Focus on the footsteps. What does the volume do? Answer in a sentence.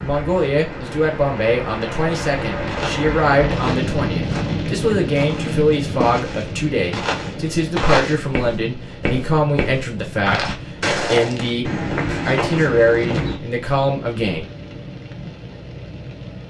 The volume of the footsteps goes up.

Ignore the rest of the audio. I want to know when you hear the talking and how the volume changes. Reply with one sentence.
You can hear the talking from 0.0 to 14.4 s, at a steady volume.